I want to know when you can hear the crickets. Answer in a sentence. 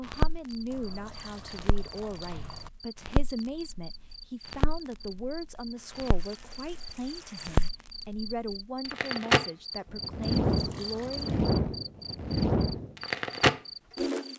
You can hear the crickets from 0.1 to 14.3 s.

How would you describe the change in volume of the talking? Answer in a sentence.
The volume of the talking stays about the same.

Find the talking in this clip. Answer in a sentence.
The talking can be heard from 0.0 to 11.4 s.